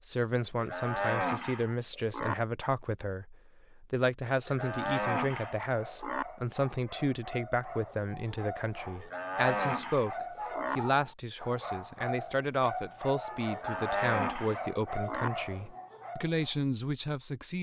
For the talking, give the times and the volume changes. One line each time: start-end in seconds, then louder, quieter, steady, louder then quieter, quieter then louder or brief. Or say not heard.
0.1-17.5 steady.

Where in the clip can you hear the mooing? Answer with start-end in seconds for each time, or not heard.
0.6-2.4, 4.5-6.2, 9.0-10.8, 13.5-15.3.